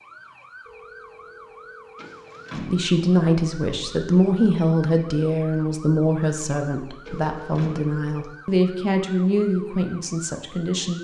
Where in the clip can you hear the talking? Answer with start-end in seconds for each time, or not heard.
2.6-10.9.